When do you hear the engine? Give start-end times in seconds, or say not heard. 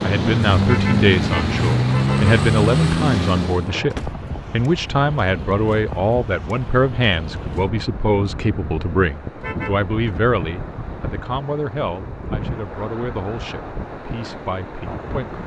0.0-3.8.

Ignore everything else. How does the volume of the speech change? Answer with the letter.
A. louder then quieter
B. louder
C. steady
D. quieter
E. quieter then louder
D.